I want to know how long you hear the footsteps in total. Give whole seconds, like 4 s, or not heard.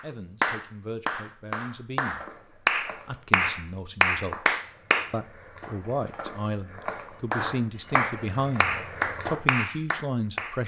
7 s.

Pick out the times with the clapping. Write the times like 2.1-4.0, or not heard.
0.4-5.1, 7.3-10.6.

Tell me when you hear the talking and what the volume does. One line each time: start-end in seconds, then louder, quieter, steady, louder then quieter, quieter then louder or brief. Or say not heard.
0.0-10.6 louder.